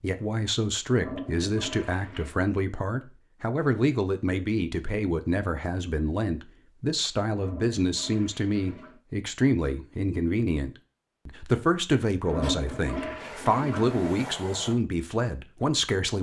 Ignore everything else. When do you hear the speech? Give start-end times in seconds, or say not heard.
0.0-16.1.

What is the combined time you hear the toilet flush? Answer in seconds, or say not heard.
5 s.